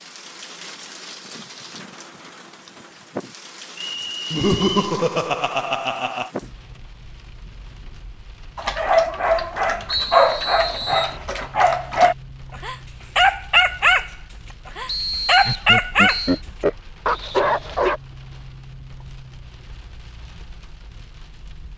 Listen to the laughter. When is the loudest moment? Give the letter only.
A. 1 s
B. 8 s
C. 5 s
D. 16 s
C.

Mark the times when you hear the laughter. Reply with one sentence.
You can hear the laughter from 4.3 to 6.3 s and from 15.4 to 16.8 s.